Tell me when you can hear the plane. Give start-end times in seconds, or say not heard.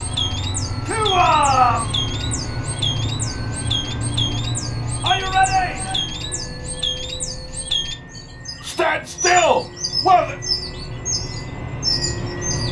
0.0-12.6.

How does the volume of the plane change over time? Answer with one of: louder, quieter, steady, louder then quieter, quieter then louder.
quieter then louder.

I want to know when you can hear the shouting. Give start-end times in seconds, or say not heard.
0.8-1.9, 5.0-6.0, 8.6-10.3.